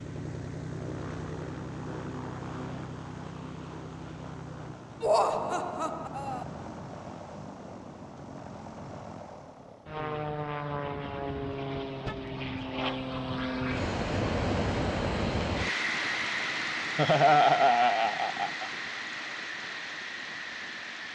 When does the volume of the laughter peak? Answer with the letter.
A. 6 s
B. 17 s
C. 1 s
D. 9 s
B.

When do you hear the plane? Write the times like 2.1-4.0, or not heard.
0.0-21.1.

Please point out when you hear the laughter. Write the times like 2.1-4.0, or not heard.
5.0-6.5, 16.9-18.7.